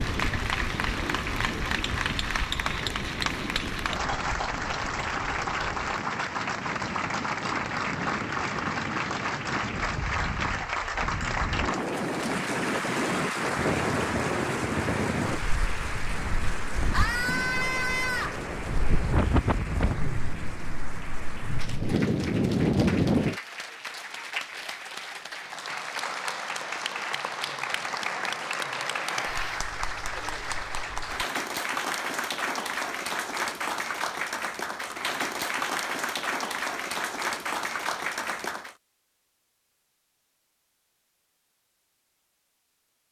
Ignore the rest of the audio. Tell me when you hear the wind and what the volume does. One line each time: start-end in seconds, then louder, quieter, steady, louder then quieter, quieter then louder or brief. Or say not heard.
0.0-23.4 louder.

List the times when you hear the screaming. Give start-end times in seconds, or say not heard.
16.9-18.4, 29.1-29.6.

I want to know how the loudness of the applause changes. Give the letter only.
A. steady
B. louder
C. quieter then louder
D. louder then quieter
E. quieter
C.